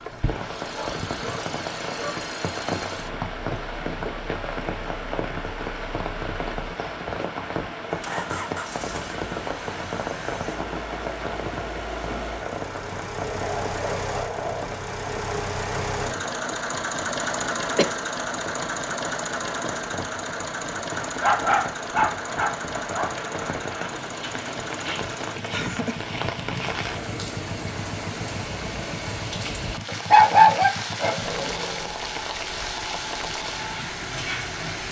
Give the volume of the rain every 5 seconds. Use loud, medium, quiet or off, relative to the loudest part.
loud, loud, loud, medium, loud, loud, loud.